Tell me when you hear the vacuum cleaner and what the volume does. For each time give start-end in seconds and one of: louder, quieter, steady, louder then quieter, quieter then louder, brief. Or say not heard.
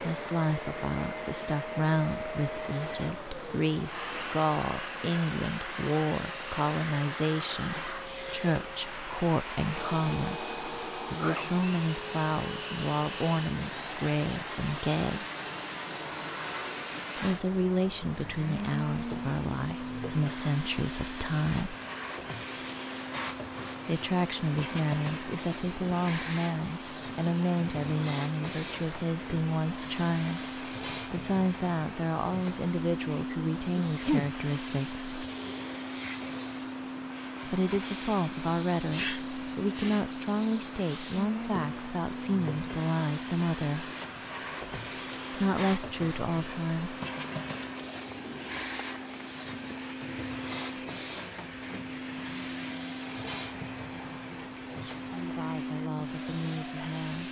0.0-57.2 steady.